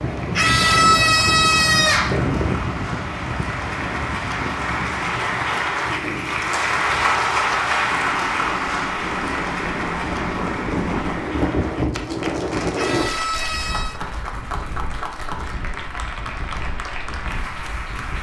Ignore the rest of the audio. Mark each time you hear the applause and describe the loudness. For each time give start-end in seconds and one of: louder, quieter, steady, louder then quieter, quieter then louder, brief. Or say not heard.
0.0-18.1 louder then quieter.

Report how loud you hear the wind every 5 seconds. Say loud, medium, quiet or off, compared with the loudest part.
loud, medium, loud, quiet.